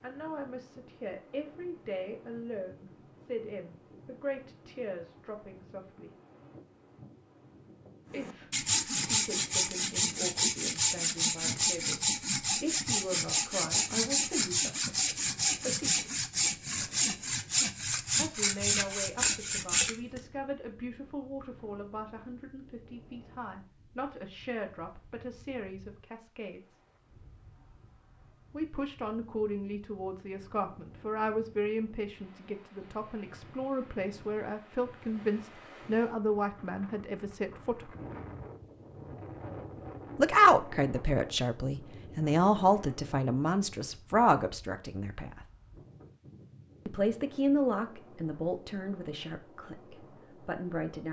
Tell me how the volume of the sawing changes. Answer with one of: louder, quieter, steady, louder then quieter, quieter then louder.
steady.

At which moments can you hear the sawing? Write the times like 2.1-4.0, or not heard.
8.1-20.2.